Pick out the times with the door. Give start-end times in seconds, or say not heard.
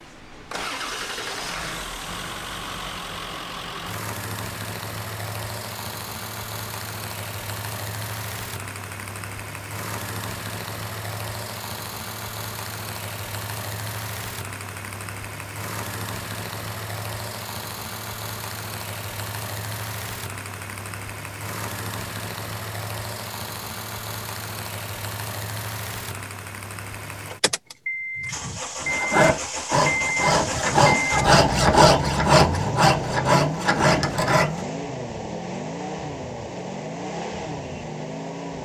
not heard.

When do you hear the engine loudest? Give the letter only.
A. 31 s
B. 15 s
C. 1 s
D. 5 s
A.